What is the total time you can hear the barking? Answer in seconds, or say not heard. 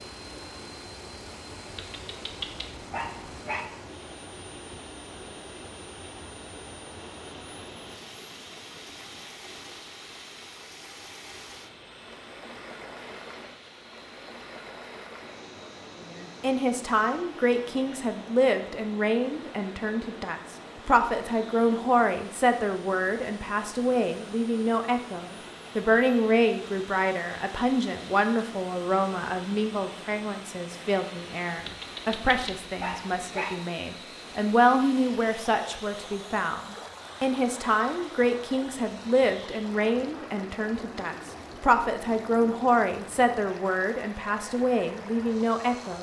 4 s.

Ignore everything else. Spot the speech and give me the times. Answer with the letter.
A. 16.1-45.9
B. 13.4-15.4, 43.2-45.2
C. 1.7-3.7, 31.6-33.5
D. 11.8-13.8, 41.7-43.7
A.